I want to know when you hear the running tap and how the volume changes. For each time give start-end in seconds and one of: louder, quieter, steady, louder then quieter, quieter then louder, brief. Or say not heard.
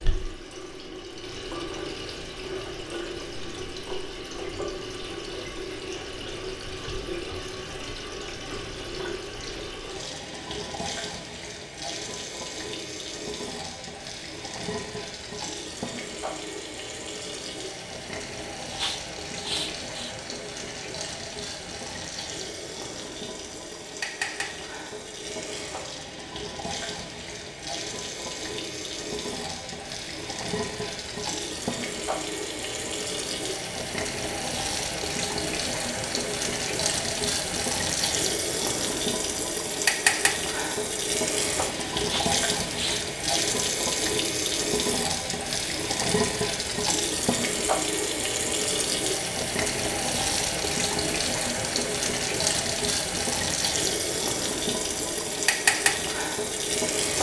0.0-57.1 louder.